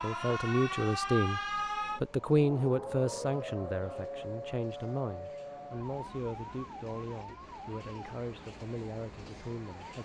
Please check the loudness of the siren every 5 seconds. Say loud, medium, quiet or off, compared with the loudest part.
loud, medium.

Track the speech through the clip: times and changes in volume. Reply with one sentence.
The speech can be heard briefly from 0.0 to 1.4 s; and from 2.0 to 10.0 s, getting quieter.